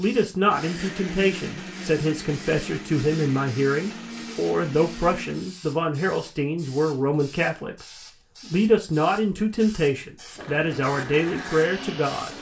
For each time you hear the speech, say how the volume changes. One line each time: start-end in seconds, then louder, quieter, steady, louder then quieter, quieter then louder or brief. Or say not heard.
0.0-12.3 steady.